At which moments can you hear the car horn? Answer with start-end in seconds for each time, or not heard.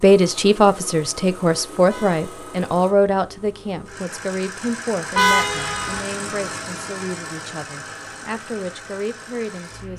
1.9-2.5, 5.2-6.0.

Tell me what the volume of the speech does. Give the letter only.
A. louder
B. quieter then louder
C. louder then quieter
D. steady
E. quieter
E.